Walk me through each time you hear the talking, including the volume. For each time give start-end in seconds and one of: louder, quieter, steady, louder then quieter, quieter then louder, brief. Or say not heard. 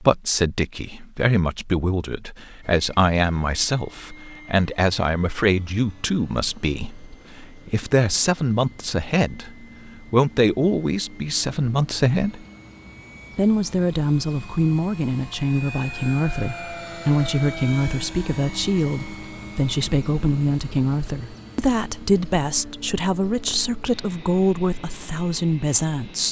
0.0-12.4 steady
13.3-26.2 steady.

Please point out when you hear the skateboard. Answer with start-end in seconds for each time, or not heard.
not heard.